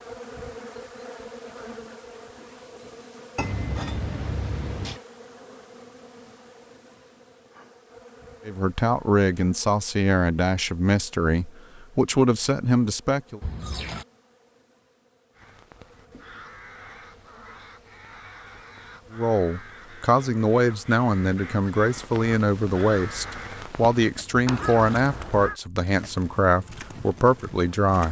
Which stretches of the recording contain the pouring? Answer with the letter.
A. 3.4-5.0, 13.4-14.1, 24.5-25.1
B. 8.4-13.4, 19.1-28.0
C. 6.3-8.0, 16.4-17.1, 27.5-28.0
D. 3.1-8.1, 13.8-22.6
A.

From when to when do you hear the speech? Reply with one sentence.
You can hear the speech from 8.4 to 13.4 s and from 19.1 to 28.0 s.